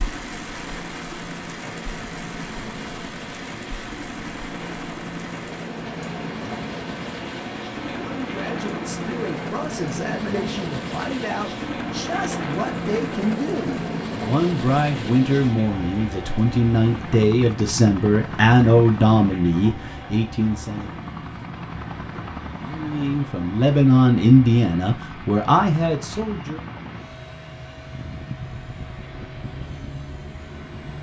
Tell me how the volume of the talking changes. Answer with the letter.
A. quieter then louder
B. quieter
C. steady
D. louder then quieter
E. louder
E.